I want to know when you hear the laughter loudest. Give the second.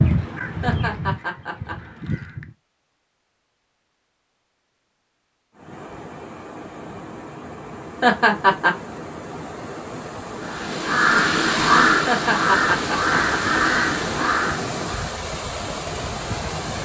8 s.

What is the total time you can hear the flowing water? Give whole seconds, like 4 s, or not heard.
11 s.